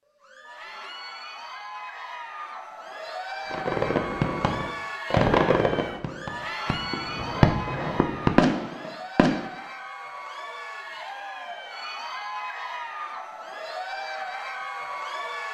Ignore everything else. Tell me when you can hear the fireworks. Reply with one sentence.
The fireworks can be heard from 3.5 to 9.5 s.